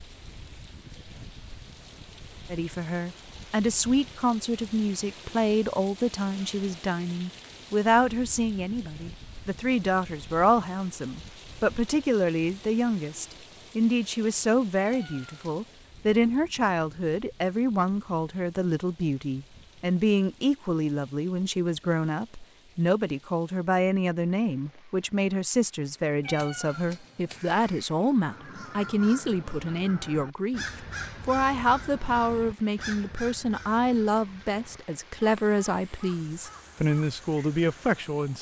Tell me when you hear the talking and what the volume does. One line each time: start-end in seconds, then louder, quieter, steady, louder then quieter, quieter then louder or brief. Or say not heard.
2.5-38.3 steady.